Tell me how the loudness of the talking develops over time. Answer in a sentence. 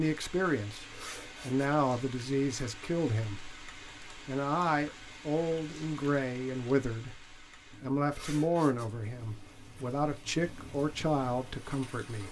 The volume of the talking stays about the same.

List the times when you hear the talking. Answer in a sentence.
You can hear the talking from 0.0 to 7.2 s and from 7.8 to 12.2 s.